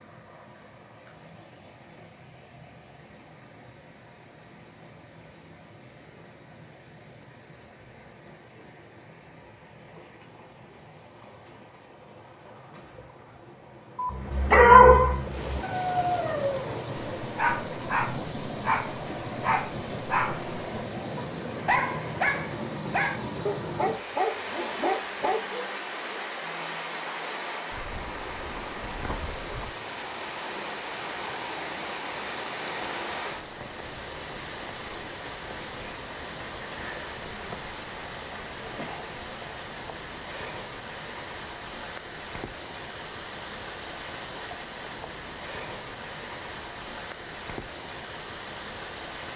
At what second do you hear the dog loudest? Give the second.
15 s.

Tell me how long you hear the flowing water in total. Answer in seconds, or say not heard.
49 s.